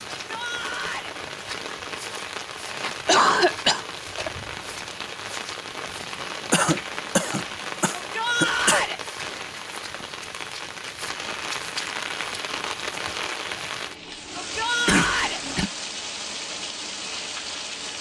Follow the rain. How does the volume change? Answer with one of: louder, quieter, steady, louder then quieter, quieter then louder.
steady.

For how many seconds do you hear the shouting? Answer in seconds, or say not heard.
3 s.